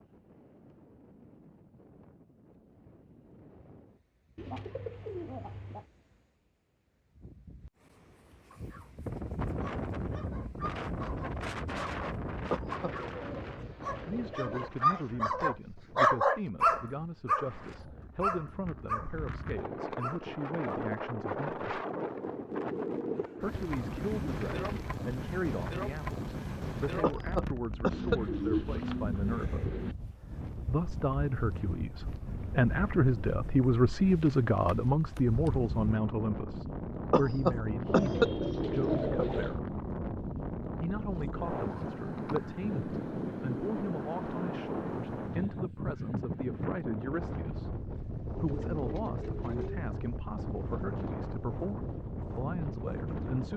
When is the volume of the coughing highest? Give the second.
38 s.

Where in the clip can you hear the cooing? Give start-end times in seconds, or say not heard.
4.3-5.8, 12.7-14.7, 23.5-25.0, 27.9-29.9, 37.9-39.6, 48.3-49.9.